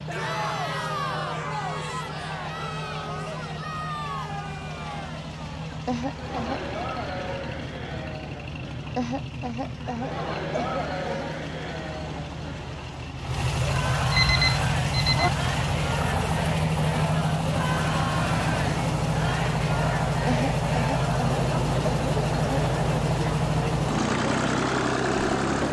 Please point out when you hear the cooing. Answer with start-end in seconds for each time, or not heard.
not heard.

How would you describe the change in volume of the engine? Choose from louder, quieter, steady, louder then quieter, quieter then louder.
louder.